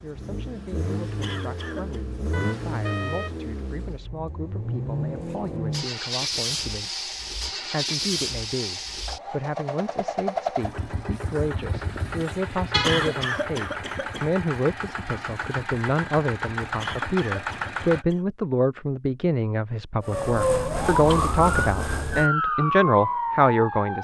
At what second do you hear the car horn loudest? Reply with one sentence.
The volume of the car horn peaks at 13 seconds.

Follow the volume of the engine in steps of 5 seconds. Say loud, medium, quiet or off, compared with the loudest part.
loud, loud, loud, loud, off.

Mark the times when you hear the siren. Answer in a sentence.
The siren can be heard from 20.0 to 23.9 s.